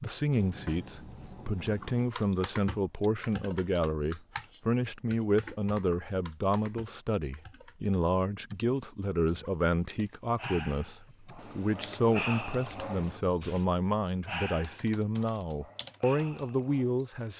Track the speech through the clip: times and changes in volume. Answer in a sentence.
You can hear the speech from 0.0 to 17.3 s, at a steady volume.